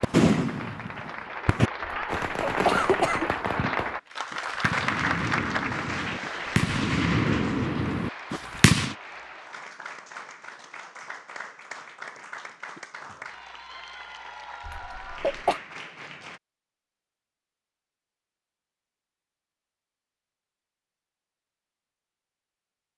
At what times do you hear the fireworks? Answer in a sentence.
The fireworks can be heard from 0.0 to 8.9 s.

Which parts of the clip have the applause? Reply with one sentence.
The applause can be heard from 0.0 to 16.4 s.